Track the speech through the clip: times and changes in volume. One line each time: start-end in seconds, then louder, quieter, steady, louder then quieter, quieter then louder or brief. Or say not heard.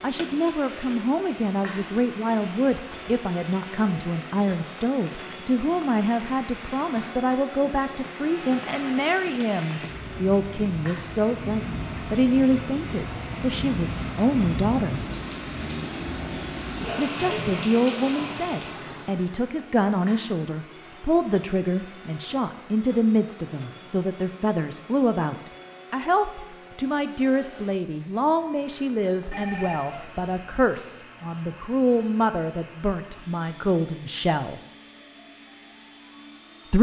0.0-15.0 steady
16.9-34.6 steady.